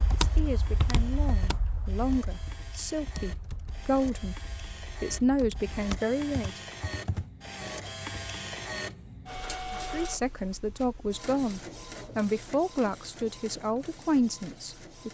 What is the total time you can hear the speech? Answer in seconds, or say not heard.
11 s.